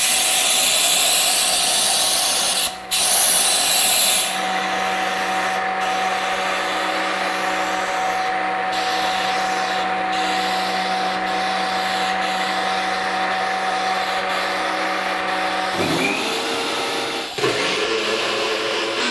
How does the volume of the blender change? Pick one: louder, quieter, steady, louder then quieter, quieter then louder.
louder.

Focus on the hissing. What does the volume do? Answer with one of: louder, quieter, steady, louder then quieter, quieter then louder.
quieter.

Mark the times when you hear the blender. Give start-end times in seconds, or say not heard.
0.0-19.0.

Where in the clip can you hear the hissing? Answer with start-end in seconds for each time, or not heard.
0.0-19.0.